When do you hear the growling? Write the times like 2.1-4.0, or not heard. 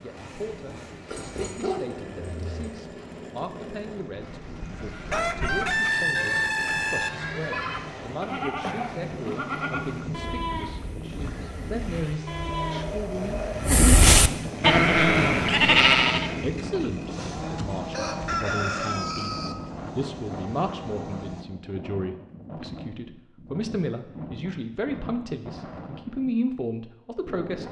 1.1-2.6.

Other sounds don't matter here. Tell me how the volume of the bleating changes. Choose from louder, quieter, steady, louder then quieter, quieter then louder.
louder.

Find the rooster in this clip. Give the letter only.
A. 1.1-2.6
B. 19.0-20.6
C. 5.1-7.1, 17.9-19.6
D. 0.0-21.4
C.